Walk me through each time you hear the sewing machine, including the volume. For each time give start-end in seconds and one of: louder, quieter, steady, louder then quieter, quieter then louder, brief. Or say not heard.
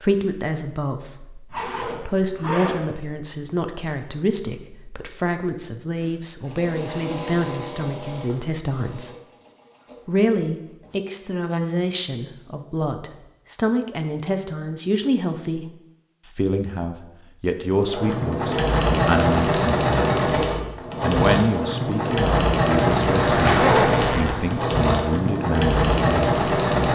6.0-11.0 quieter
17.6-26.9 steady.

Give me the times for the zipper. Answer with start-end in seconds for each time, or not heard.
1.5-2.9, 22.6-24.6.